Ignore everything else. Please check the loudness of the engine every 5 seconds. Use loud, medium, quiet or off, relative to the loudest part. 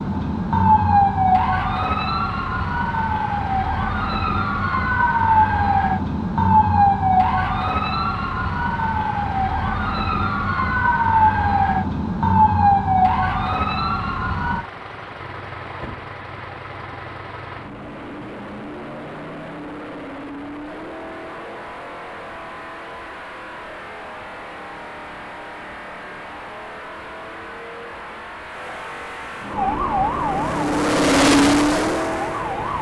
quiet, quiet, quiet, quiet, quiet, quiet, loud.